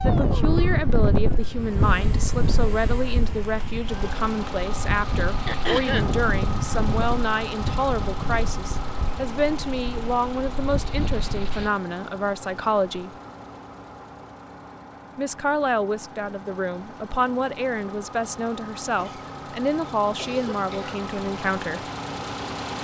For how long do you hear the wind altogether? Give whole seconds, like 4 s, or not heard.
12 s.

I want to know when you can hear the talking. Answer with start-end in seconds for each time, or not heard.
0.0-13.1, 15.2-21.9.